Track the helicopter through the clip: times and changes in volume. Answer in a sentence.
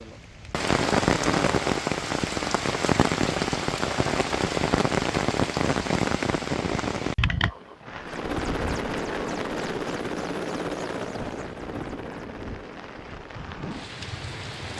The helicopter can be heard from 8.0 to 14.7 s, getting quieter.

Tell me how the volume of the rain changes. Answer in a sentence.
The loudness of the rain goes down.